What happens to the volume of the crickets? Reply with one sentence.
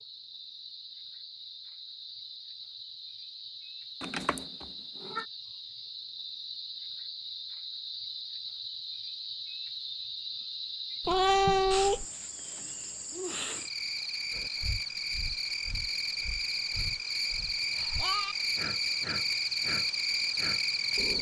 The loudness of the crickets goes up.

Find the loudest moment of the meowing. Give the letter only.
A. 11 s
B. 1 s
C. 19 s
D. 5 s
A.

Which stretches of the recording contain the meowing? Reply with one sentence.
The meowing can be heard from 4.0 to 5.2 s, from 11.0 to 12.1 s and from 17.9 to 18.4 s.